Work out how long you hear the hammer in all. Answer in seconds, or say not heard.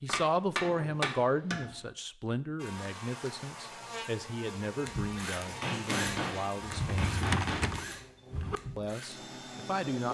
4 s.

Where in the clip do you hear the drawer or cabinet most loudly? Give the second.
7 s.